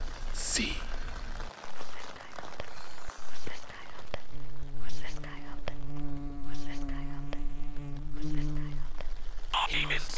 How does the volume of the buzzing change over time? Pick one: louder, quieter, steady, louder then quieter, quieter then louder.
louder then quieter.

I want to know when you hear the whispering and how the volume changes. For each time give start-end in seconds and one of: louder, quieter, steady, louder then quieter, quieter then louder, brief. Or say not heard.
0.0-10.1 quieter then louder.